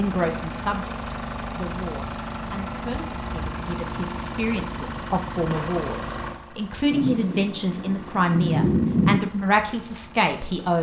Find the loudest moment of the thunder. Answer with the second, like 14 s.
9 s.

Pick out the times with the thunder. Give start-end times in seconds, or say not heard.
6.9-9.2.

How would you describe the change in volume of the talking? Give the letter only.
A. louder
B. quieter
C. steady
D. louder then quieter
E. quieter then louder
A.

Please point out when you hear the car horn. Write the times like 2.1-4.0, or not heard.
not heard.